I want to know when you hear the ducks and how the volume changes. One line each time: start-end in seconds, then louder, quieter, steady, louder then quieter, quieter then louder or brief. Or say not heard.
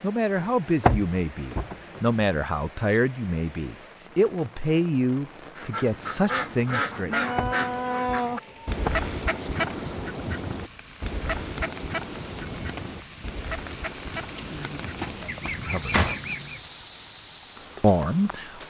5.5-16.6 quieter.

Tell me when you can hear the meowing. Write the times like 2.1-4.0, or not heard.
not heard.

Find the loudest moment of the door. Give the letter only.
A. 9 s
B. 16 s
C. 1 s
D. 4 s
C.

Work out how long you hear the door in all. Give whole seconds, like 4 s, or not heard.
5 s.